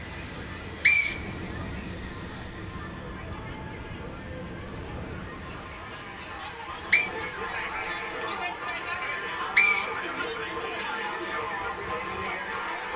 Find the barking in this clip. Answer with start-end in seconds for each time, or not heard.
not heard.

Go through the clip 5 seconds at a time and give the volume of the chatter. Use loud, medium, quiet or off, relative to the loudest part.
quiet, loud, loud.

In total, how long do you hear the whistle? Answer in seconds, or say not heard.
3 s.